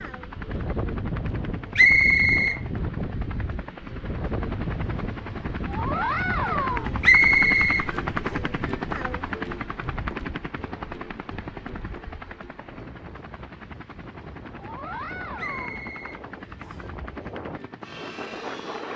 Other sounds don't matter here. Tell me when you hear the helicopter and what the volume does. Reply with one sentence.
The helicopter can be heard from 0.0 to 18.9 s, getting louder then quieter.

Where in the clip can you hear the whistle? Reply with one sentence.
You can hear the whistle from 1.8 to 2.6 s, from 7.0 to 7.8 s and from 15.3 to 16.9 s.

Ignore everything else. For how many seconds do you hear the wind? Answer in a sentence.
You can hear the wind for 19 seconds altogether.